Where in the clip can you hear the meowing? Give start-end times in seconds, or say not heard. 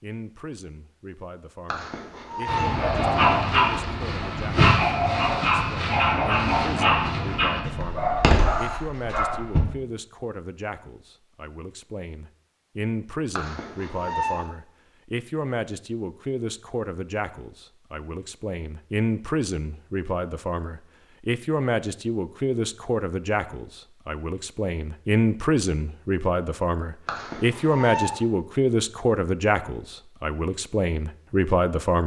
1.6-2.8, 13.3-14.5, 27.1-28.2.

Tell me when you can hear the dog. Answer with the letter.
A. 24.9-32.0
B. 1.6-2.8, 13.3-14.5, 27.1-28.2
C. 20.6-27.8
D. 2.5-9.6
D.